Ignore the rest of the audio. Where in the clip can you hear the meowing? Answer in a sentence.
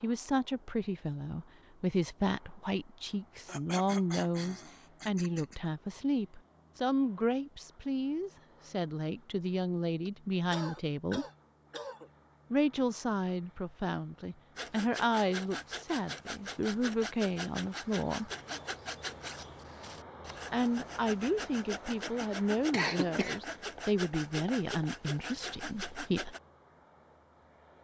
You can't hear the meowing here.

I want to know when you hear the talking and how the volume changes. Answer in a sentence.
You can hear the talking from 0.0 to 11.2 s, at a steady volume; from 12.5 to 18.3 s, at a steady volume; and from 20.5 to 26.4 s, getting quieter.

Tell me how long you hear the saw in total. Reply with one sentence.
The saw can be heard for 12 seconds in total.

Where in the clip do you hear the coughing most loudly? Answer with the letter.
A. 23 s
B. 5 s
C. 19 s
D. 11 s
A.